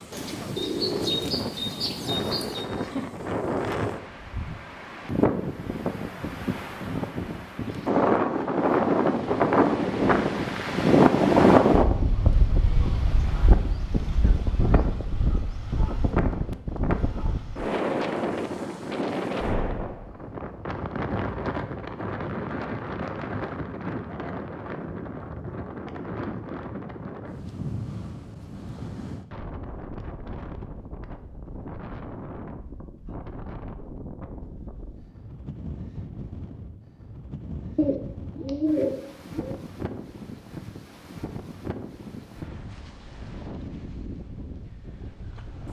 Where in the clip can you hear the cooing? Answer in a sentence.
The cooing can be heard from 0.1 to 2.7 s and from 37.8 to 39.5 s.